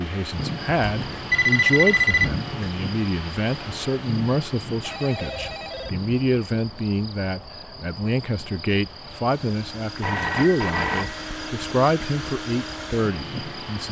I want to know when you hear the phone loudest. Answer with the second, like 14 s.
2 s.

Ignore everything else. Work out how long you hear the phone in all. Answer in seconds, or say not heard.
4 s.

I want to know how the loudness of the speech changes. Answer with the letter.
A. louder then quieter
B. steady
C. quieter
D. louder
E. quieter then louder
B.